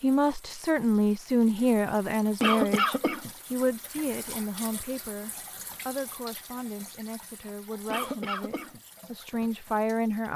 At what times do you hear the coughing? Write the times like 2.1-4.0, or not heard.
2.4-3.3, 7.9-8.8.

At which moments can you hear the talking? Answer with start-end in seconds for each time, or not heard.
0.0-10.3.